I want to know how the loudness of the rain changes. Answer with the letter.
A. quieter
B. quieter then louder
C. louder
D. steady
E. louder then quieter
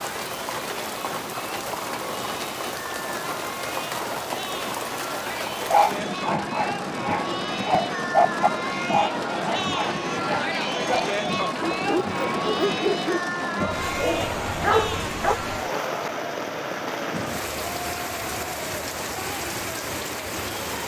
D.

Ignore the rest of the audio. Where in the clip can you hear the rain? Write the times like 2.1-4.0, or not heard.
0.0-20.8.